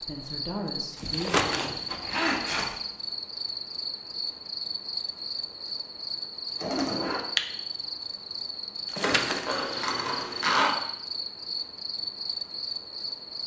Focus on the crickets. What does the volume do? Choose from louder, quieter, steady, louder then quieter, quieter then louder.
steady.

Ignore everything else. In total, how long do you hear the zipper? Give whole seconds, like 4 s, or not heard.
4 s.